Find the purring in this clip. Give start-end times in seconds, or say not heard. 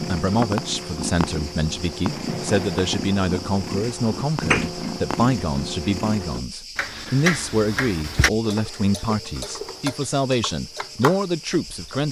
0.0-6.4.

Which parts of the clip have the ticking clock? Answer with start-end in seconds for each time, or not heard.
0.0-12.0.